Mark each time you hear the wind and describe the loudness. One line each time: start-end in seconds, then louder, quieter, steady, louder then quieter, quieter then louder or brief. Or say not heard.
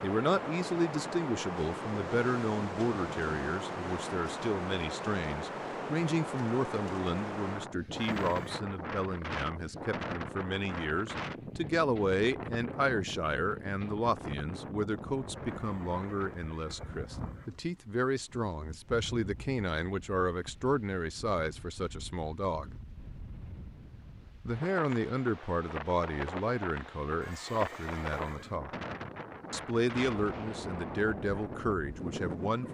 0.0-32.7 quieter then louder.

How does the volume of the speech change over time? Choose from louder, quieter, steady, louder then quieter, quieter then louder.
steady.